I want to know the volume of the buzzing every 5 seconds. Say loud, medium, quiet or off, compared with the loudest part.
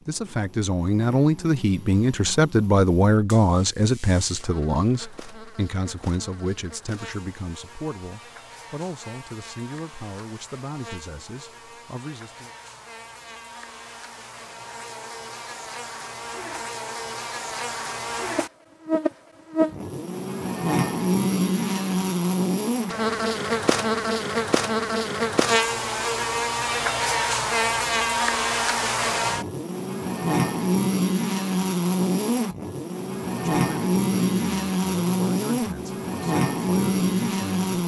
quiet, quiet, quiet, medium, loud, loud, loud, loud.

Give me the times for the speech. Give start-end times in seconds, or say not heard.
0.1-12.5, 33.3-37.8.